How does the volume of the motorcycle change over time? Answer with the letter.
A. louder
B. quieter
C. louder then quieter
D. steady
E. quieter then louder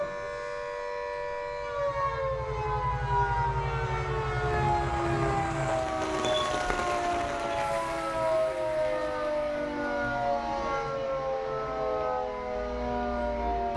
A.